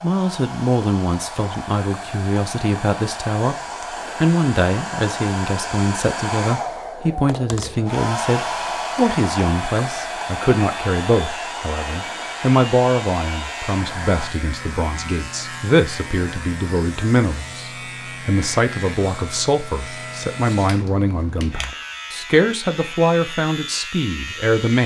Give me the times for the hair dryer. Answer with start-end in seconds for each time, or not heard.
0.0-14.3.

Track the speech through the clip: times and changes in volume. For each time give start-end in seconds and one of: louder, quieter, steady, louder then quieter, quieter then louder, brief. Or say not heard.
0.0-24.8 steady.